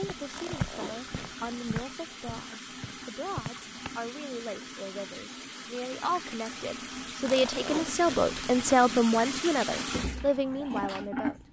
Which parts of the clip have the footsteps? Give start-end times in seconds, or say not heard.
0.0-4.0.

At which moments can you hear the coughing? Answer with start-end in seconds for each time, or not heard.
not heard.